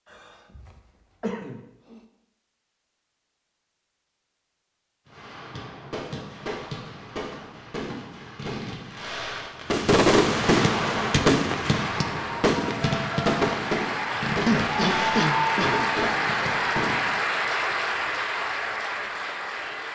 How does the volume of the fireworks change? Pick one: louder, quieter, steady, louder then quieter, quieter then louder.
louder then quieter.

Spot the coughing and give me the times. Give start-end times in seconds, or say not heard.
0.1-2.0, 14.4-15.8.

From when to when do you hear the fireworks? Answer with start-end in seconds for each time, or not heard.
5.0-17.1.